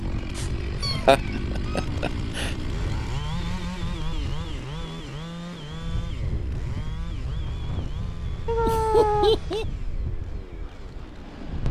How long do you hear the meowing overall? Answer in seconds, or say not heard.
2 s.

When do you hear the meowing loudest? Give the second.
9 s.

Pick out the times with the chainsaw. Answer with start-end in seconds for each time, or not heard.
0.0-11.6.